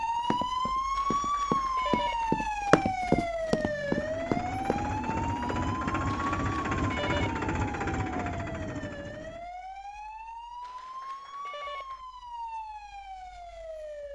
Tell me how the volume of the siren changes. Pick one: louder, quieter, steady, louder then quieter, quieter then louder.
quieter.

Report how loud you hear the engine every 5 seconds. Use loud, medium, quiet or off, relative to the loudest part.
medium, loud, off.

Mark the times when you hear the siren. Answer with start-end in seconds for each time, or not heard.
0.0-14.1.